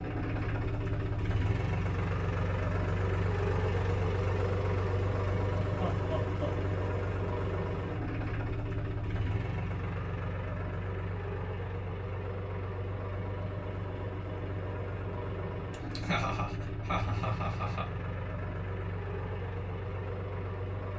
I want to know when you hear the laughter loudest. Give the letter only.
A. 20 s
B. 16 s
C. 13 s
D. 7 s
B.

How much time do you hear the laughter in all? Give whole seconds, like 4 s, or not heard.
3 s.